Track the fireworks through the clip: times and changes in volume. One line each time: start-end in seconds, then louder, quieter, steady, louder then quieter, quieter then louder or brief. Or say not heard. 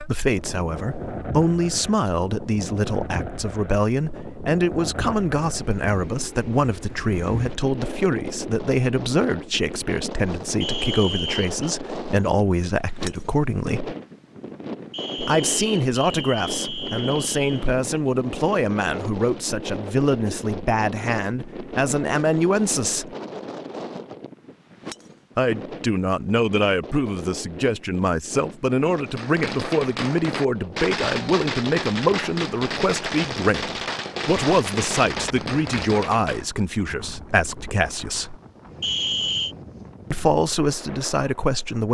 28.9-36.5 steady.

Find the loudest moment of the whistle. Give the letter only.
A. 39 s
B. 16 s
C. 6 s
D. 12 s
A.